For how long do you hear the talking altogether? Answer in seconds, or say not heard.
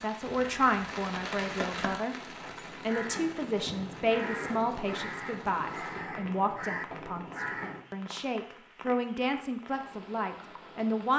10 s.